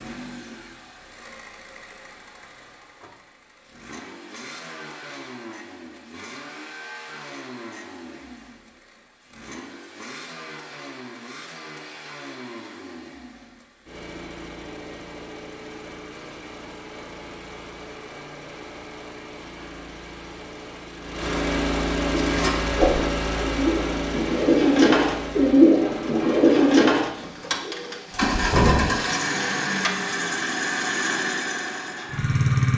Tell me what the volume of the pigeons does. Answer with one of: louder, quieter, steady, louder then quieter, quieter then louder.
louder then quieter.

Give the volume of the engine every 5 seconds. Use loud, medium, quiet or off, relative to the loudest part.
quiet, quiet, quiet, quiet, loud, loud, loud.